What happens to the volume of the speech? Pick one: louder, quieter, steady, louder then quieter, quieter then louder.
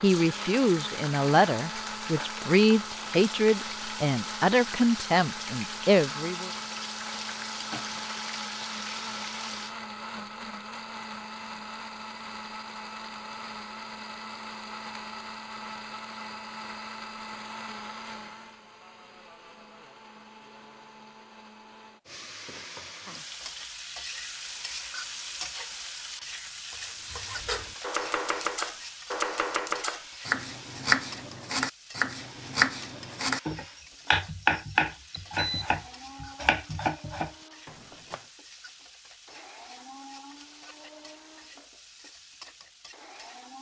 steady.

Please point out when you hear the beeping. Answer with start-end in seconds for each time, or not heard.
35.1-35.7.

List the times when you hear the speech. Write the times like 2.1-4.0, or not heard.
0.0-6.5.